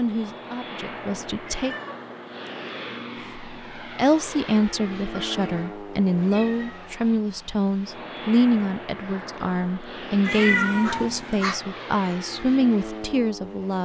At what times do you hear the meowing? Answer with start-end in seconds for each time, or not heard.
1.4-2.5, 5.1-7.2, 10.2-11.6.